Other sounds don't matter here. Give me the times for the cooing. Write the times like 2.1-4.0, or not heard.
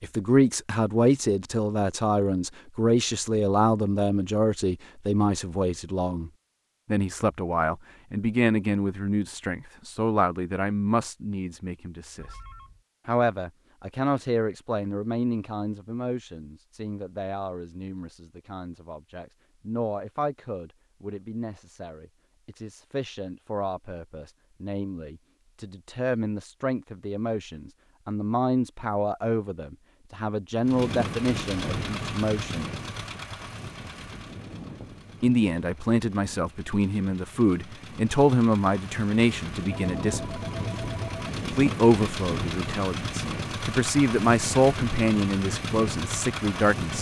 not heard.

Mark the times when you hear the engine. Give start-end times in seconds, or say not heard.
30.6-46.9.